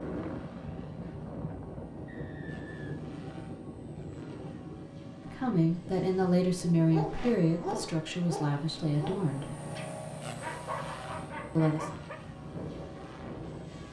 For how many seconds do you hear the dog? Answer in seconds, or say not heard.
5 s.